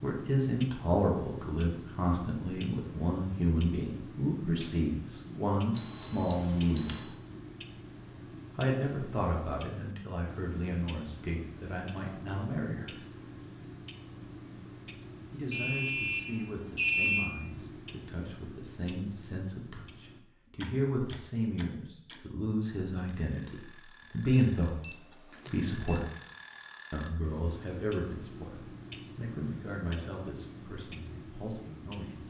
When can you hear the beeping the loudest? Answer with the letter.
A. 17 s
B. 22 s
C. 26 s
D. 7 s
A.